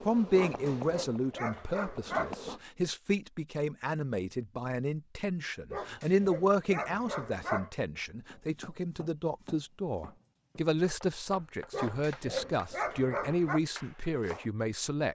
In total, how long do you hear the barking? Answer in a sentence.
You can hear the barking for 6 seconds altogether.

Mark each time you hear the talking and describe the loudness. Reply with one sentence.
The talking can be heard from 0.1 to 15.1 s, at a steady volume.